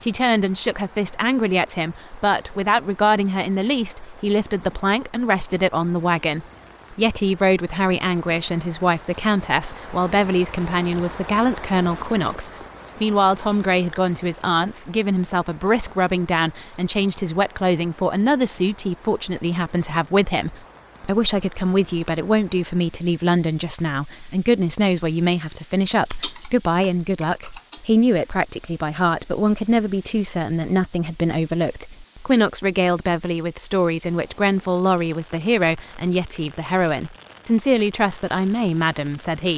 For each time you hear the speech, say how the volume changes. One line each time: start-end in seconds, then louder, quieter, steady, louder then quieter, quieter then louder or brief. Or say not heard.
0.0-39.5 steady.